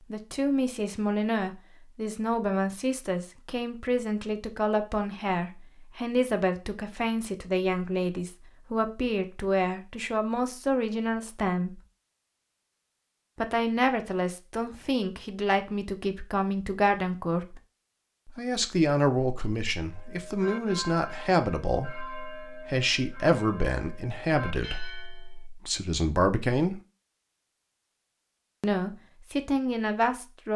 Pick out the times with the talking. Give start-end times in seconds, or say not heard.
0.1-11.8, 13.3-17.6, 18.2-26.8, 28.6-30.5.